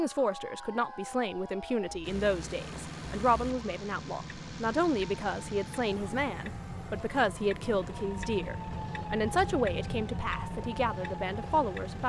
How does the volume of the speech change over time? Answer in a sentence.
The loudness of the speech stays about the same.